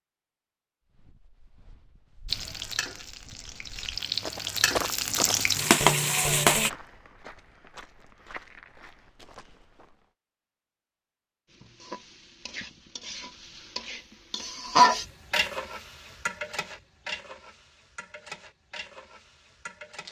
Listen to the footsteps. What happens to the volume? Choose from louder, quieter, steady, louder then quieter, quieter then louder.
louder then quieter.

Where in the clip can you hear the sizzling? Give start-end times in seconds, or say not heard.
2.2-6.7, 11.5-20.0.